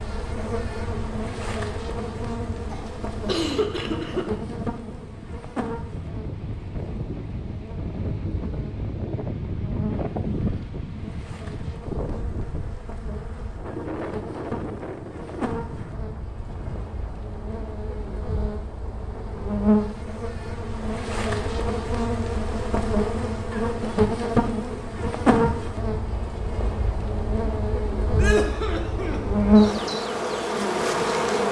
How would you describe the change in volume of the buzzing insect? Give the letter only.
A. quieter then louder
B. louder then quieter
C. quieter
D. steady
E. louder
A.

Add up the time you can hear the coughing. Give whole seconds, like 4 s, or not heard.
3 s.